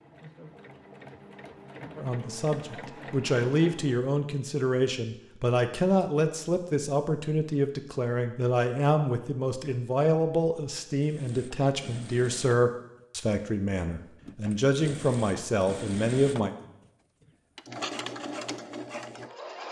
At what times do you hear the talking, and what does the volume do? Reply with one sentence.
The talking can be heard from 1.9 to 16.6 s, at a steady volume.